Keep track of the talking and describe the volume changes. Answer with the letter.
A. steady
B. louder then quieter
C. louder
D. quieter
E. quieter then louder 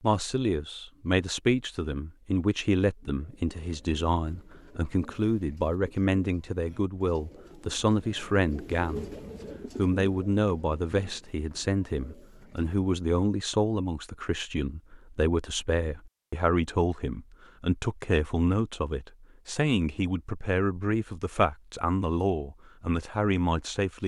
A.